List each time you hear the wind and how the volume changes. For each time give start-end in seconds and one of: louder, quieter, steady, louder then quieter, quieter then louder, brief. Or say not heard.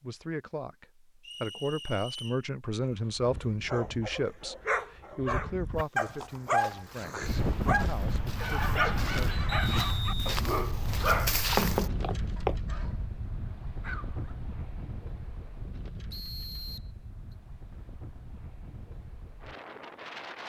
7.2-20.4 quieter.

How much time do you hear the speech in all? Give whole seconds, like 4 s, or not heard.
9 s.